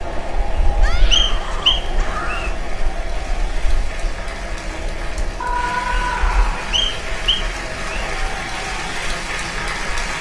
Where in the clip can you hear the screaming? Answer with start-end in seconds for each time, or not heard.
0.8-2.6, 5.4-6.8.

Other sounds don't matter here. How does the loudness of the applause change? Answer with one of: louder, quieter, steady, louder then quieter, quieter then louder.
louder.